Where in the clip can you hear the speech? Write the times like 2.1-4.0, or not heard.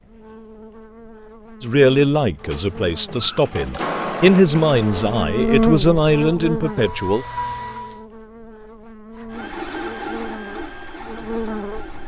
1.6-7.2.